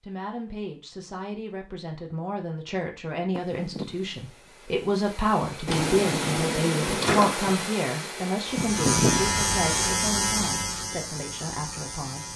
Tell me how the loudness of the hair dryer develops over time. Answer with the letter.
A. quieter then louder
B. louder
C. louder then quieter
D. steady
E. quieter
B.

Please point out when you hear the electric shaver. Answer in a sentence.
You can hear the electric shaver from 8.4 to 12.3 s.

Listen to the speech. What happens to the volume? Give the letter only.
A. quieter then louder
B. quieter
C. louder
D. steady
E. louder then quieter
E.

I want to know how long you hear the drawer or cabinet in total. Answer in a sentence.
You can hear the drawer or cabinet for 2 seconds altogether.